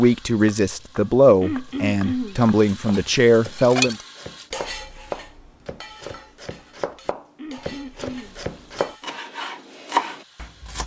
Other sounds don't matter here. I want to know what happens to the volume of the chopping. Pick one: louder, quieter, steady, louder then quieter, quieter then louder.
louder.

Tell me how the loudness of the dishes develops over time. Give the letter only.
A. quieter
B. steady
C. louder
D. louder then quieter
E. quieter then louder
A.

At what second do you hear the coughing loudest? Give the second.
2 s.